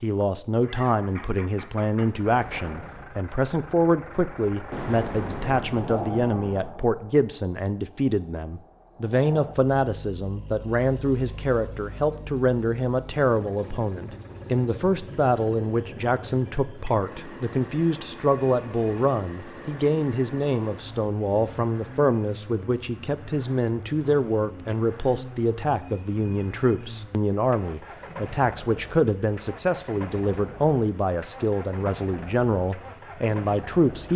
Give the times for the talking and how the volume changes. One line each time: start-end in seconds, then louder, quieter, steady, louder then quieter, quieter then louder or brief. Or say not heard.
0.0-34.1 steady.